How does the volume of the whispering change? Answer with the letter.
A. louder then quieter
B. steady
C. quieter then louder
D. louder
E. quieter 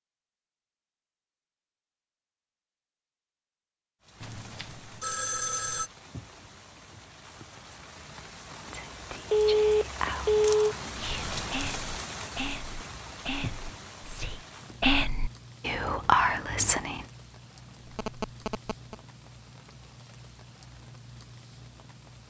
D.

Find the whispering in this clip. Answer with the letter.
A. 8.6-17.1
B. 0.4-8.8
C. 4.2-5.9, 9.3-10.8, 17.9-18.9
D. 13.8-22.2
A.